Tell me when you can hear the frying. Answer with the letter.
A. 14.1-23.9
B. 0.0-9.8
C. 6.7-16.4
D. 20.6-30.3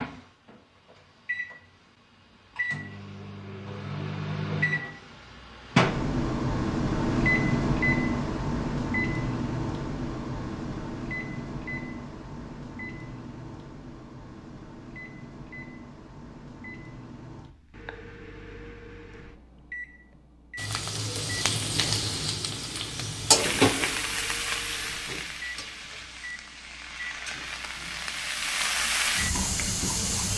D.